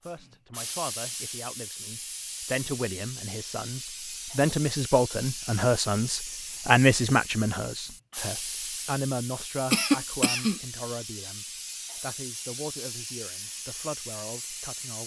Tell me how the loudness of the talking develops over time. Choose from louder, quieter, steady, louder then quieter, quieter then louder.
louder then quieter.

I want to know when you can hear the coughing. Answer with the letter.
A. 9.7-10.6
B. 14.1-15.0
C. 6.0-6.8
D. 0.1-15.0
A.